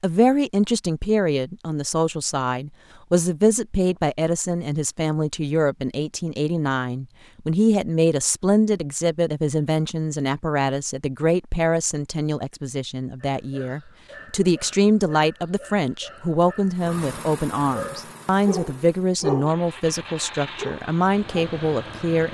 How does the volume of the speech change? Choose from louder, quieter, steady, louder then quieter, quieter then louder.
steady.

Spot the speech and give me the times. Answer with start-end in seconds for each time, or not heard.
0.0-22.2.